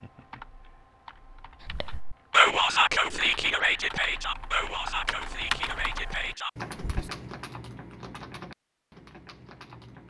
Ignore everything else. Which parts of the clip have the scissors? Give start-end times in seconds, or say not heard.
not heard.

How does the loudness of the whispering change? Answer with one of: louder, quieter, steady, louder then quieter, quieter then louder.
quieter.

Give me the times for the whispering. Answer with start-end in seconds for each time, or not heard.
1.6-7.1.